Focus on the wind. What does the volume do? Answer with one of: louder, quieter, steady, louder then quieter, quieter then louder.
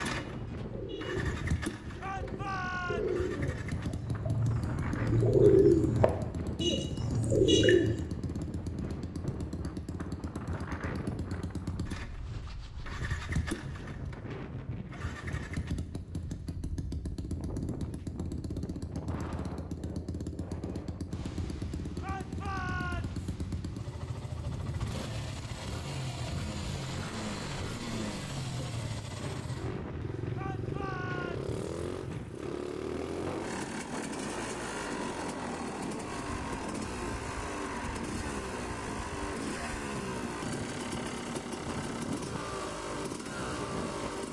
steady.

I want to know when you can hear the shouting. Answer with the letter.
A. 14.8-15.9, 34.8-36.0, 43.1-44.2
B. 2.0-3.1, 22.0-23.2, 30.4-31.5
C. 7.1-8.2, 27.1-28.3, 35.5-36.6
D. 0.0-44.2
B.